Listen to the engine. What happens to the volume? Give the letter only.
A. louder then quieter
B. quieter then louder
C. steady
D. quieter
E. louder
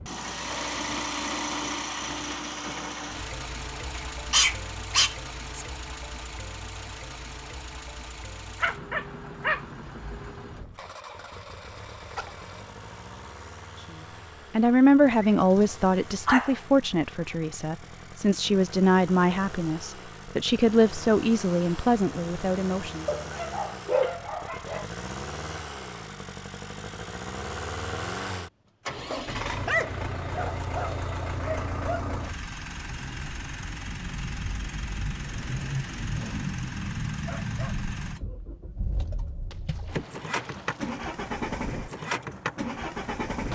B.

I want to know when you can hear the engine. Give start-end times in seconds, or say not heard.
0.0-43.5.